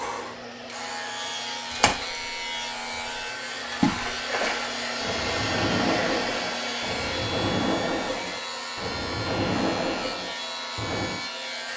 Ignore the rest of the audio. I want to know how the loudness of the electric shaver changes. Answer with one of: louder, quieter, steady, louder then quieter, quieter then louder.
steady.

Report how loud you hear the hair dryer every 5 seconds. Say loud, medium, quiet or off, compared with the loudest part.
medium, loud, medium.